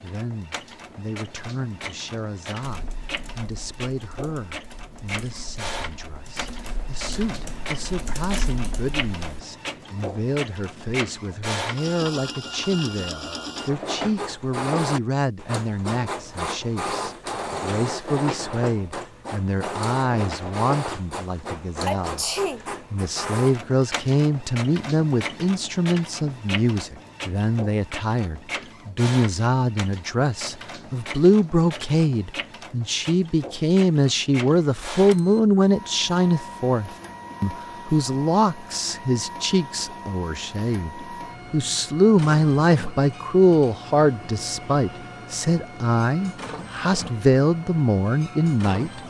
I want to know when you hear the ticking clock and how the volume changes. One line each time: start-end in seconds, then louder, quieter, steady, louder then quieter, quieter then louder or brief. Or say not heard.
not heard.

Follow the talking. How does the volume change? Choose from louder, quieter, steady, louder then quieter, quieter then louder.
louder.